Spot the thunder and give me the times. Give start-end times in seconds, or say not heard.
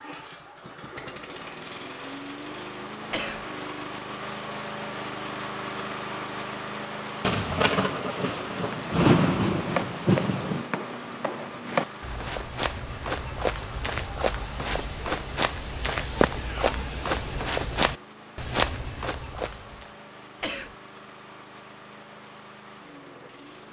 7.2-10.7.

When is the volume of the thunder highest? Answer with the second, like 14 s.
9 s.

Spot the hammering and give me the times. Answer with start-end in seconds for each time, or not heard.
not heard.